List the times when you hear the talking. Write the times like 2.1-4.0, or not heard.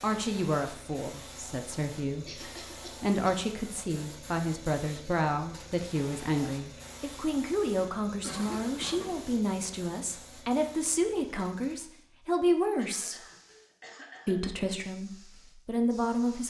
0.0-13.2, 14.2-16.4.